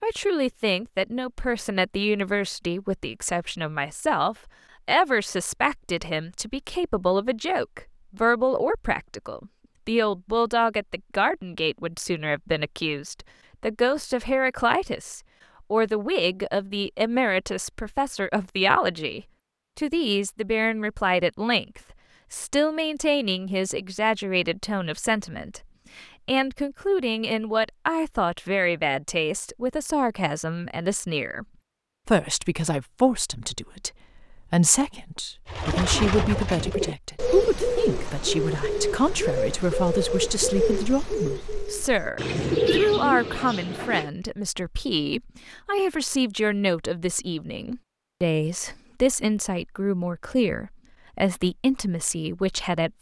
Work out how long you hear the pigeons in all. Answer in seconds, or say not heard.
9 s.